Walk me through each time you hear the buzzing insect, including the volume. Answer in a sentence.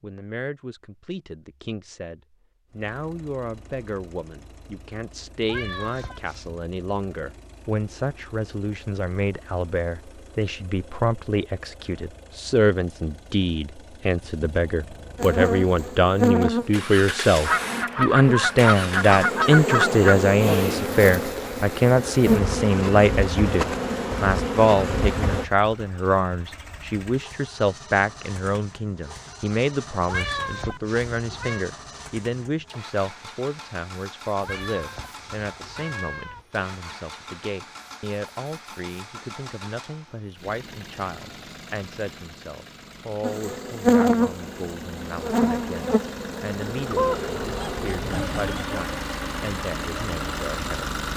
The buzzing insect can be heard from 15.2 to 25.4 s, getting quieter then louder; and from 43.2 to 51.1 s, getting quieter.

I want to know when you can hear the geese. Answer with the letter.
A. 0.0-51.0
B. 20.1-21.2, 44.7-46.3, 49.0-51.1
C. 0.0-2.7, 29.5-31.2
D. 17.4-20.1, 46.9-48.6
D.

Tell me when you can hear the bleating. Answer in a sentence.
You can't hear the bleating here.